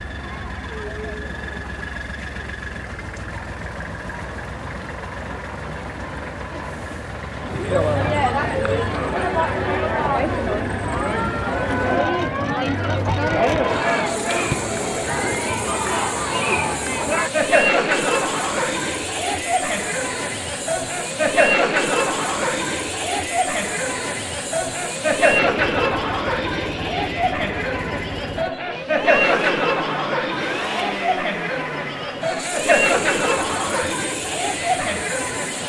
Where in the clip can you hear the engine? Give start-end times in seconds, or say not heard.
0.0-35.6.